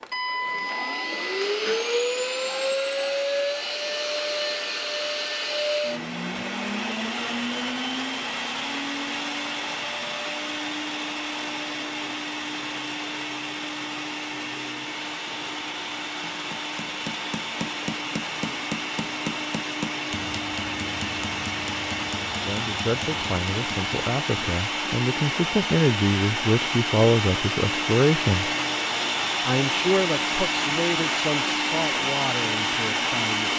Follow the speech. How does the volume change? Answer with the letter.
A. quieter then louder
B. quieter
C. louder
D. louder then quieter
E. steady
D.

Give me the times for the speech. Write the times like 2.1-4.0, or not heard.
22.4-28.6, 29.4-33.5.